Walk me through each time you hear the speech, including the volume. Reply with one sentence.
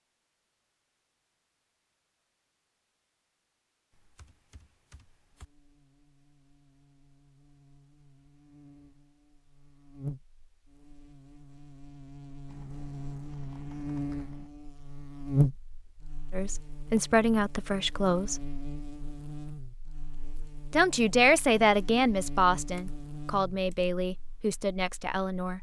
You can hear the speech briefly from 16.3 to 18.4 s; and from 20.7 to 25.5 s, getting quieter.